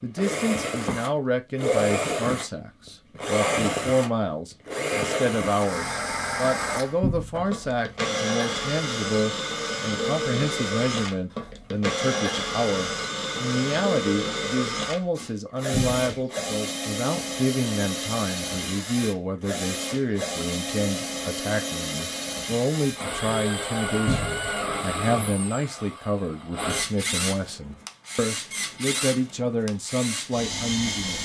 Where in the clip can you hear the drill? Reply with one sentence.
The drill can be heard from 0.0 to 31.2 s.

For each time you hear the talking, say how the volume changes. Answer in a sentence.
The talking can be heard from 0.0 to 31.2 s, at a steady volume.